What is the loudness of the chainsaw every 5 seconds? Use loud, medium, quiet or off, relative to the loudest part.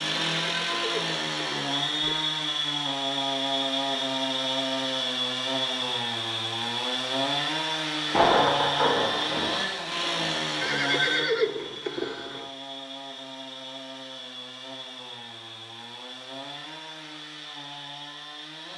loud, loud, medium, quiet.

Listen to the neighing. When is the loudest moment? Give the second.
11 s.